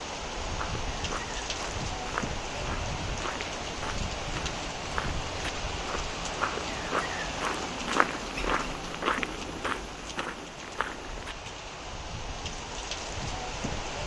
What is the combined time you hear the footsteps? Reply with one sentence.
The footsteps can be heard for 11 seconds in total.